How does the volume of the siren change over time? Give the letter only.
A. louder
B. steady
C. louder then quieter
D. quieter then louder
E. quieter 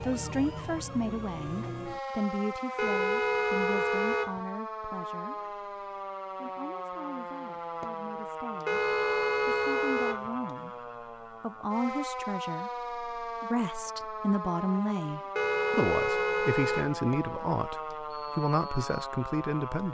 B.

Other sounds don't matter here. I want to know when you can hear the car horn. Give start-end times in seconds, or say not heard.
2.8-4.4, 8.7-10.3, 15.3-17.0.